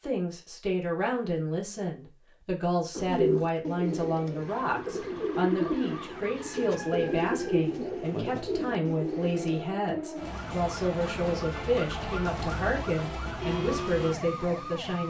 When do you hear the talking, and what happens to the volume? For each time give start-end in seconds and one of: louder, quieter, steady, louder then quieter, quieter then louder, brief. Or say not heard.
0.0-15.0 steady.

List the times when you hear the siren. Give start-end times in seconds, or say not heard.
4.5-15.0.